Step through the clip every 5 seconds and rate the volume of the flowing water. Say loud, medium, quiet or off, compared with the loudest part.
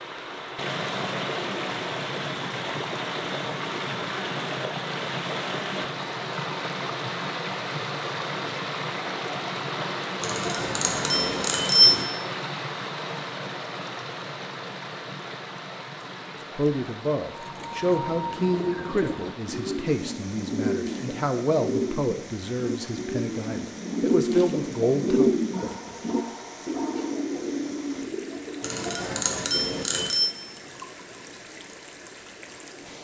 loud, loud, loud, medium, quiet, quiet, quiet.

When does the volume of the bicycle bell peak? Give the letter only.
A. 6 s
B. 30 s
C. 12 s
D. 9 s
C.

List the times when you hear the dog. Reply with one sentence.
You can hear the dog from 25.5 to 27.1 s.